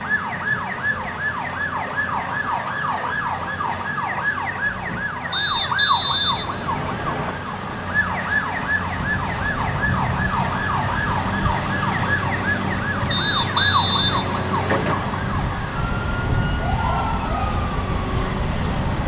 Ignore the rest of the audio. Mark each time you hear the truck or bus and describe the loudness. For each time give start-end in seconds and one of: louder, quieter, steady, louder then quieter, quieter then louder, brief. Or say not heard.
0.0-19.0 louder.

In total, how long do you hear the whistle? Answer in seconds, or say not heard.
4 s.